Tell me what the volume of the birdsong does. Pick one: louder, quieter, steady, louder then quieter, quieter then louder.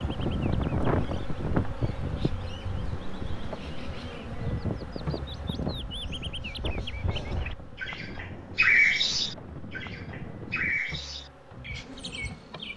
louder then quieter.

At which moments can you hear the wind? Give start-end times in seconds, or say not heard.
0.0-10.8.